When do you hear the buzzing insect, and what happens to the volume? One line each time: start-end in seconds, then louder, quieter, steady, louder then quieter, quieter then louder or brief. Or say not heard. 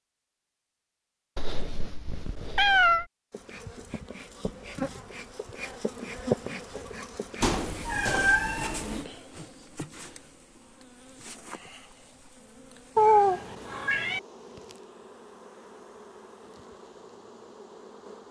3.3-18.2 quieter.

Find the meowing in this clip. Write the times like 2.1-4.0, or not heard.
1.4-3.0, 7.4-9.1, 12.9-14.2.